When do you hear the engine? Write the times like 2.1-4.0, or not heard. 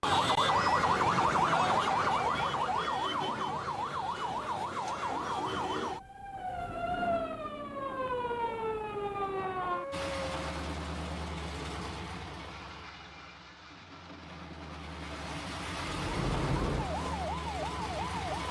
9.9-18.4.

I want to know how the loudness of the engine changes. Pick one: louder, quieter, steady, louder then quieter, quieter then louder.
quieter then louder.